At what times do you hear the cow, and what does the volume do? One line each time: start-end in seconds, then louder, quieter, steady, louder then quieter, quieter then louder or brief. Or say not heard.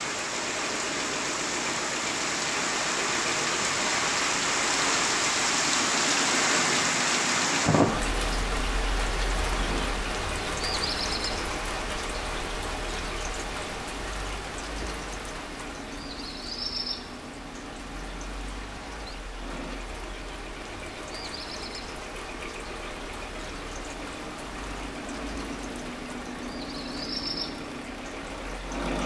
not heard.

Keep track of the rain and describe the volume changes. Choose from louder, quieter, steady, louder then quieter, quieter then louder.
quieter.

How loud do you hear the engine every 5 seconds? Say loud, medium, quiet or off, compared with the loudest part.
loud, loud, medium, medium, medium, loud.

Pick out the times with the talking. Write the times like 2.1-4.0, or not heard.
not heard.